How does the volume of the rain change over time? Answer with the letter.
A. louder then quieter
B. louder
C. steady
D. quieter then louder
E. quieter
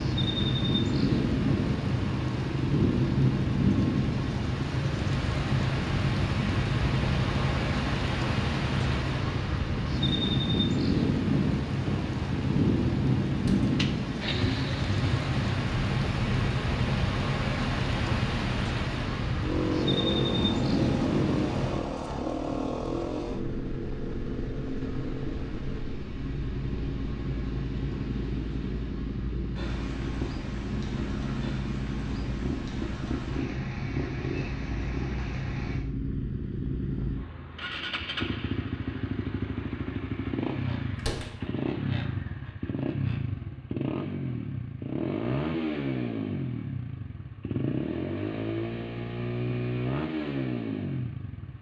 E.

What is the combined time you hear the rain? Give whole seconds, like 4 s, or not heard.
36 s.